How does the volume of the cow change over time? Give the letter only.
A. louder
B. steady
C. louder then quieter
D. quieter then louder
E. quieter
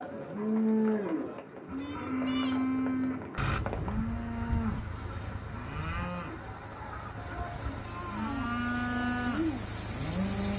D.